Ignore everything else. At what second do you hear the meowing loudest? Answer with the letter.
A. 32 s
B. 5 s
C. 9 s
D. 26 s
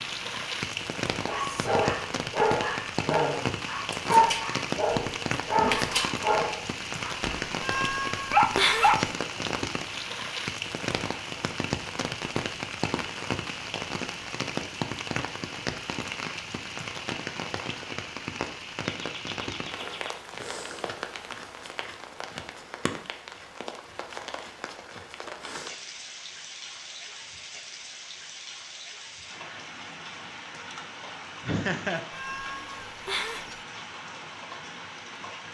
C.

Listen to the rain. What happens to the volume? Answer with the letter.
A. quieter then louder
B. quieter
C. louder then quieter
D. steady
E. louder
B.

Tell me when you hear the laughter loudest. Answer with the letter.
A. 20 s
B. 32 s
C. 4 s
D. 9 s
B.